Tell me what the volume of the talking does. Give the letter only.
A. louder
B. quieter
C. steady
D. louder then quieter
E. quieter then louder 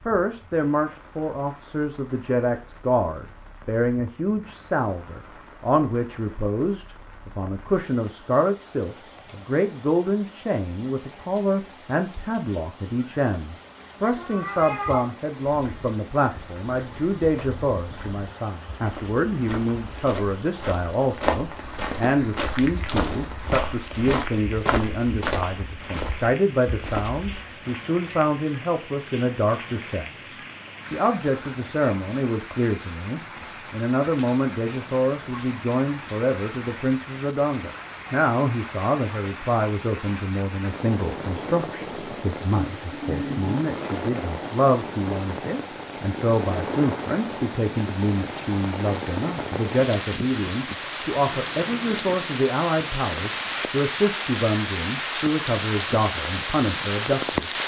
C.